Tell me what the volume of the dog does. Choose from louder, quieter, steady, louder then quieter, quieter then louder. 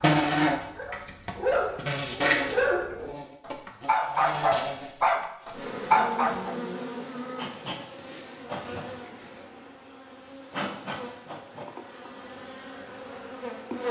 louder.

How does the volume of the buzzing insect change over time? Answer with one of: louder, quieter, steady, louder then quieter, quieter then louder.
quieter.